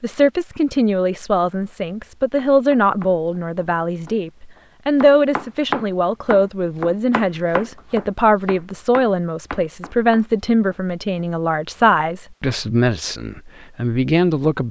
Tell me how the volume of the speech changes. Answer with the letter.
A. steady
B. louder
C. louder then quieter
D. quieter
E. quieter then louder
A.